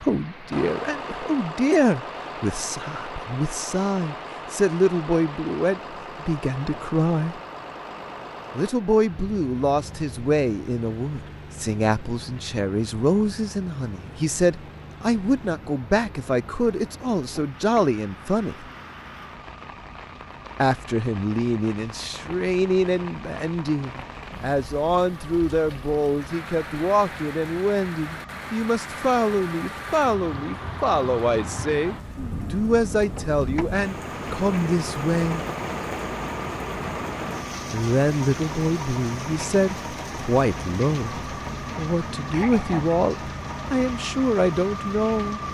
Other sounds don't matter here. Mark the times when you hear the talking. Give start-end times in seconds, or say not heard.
0.0-7.3, 8.6-18.6, 20.6-35.5, 37.7-45.4.